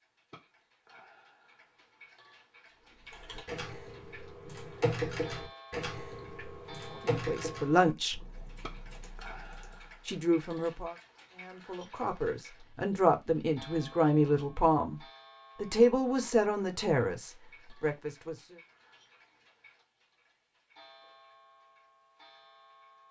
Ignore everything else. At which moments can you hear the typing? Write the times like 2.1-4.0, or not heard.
2.9-10.1.